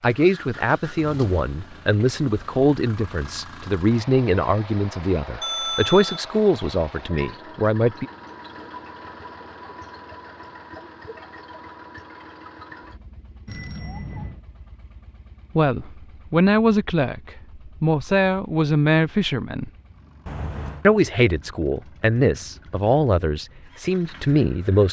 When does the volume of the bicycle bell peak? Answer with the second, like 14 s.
6 s.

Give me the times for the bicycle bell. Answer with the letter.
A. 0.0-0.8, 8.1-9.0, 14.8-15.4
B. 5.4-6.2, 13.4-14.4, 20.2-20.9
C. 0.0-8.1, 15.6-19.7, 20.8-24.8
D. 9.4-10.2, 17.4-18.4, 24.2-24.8
B.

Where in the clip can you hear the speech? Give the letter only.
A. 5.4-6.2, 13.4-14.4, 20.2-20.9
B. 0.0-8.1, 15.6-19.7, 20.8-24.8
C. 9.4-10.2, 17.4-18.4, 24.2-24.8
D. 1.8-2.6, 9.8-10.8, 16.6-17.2
B.